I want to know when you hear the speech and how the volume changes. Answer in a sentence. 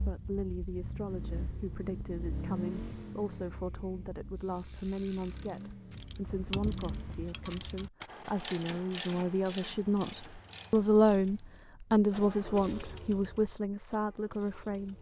You can hear the speech from 0.0 to 14.9 s, getting louder.